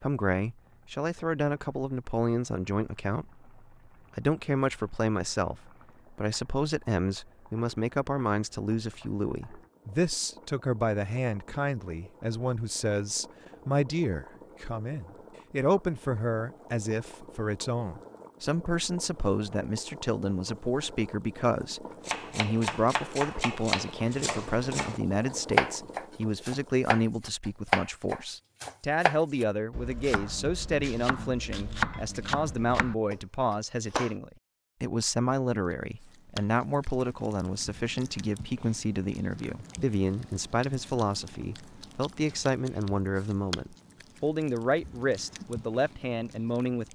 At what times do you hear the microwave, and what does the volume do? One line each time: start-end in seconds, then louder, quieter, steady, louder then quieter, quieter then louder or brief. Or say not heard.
not heard.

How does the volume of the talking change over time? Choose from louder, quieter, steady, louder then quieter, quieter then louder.
steady.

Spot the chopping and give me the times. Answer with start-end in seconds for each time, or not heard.
22.1-34.1.